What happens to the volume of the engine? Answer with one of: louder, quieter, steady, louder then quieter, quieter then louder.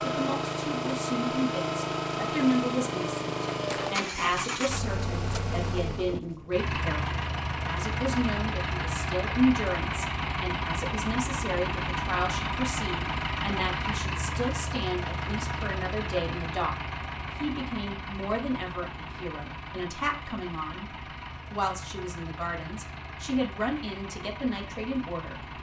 quieter.